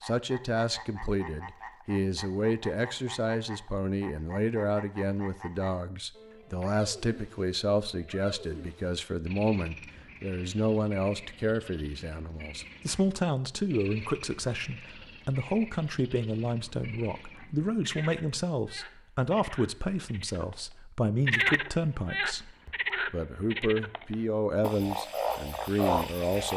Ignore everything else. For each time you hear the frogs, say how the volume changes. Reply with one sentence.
The frogs can be heard from 0.0 to 26.5 s, getting louder.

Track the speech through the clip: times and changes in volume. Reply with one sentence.
You can hear the speech from 0.0 to 26.5 s, at a steady volume.